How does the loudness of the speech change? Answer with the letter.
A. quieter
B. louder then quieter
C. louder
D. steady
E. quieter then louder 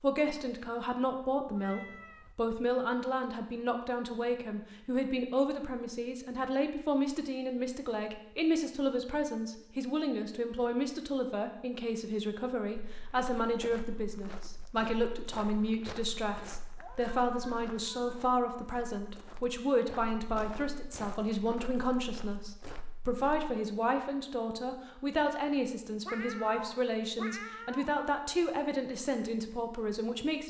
D.